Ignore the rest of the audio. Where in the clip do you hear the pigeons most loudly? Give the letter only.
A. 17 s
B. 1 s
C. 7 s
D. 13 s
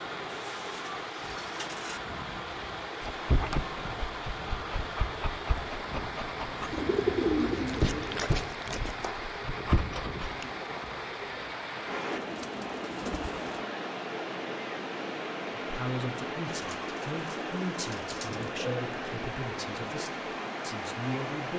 C.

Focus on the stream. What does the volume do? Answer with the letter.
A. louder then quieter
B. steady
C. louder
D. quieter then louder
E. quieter
B.